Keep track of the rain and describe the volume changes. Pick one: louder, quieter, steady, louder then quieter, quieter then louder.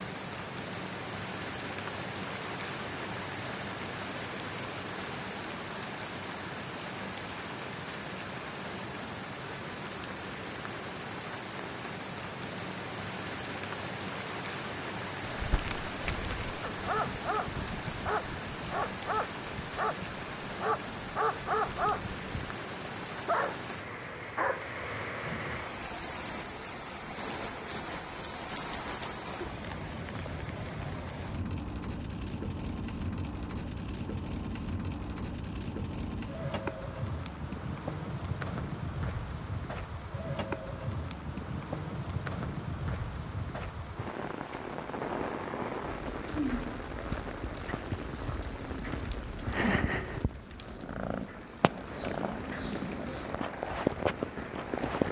steady.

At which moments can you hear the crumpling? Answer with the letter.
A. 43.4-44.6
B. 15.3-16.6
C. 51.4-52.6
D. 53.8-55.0
B.